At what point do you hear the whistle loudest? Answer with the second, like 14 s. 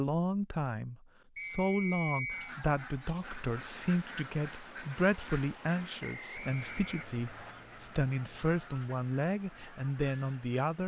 2 s.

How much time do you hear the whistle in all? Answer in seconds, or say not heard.
3 s.